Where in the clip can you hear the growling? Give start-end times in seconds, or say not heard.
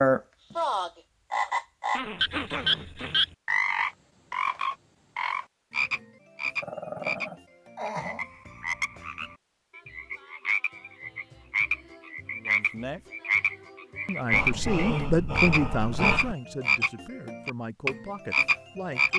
1.9-3.2, 6.6-8.2, 14.3-16.4.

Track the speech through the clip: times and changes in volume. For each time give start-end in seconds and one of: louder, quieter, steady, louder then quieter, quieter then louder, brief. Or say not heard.
12.3-13.0 brief
14.1-19.1 quieter.